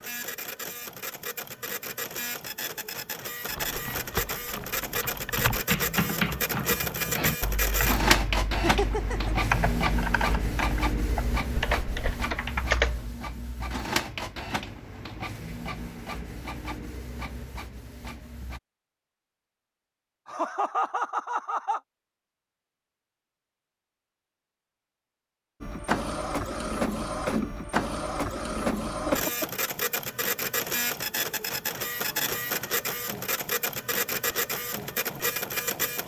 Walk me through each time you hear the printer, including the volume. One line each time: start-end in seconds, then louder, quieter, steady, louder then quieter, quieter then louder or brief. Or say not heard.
0.0-18.6 louder then quieter
25.6-36.0 steady.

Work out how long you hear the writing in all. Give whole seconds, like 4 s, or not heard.
not heard.